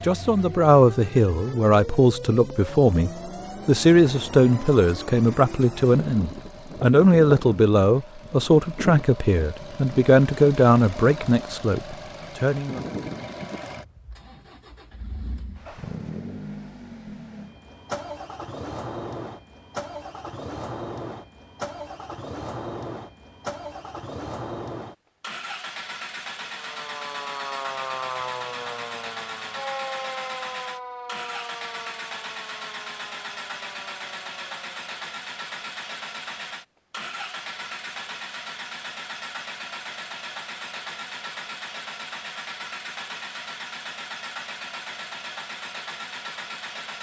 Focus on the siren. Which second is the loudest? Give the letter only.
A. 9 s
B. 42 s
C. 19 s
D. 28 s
D.